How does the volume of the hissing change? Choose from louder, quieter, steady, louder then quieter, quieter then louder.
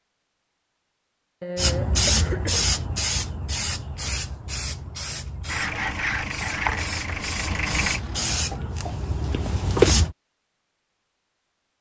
quieter then louder.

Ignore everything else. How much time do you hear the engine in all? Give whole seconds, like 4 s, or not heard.
3 s.